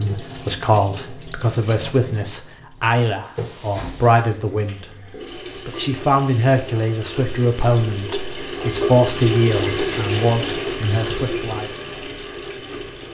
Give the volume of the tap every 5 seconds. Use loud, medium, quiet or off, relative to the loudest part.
medium, loud, loud.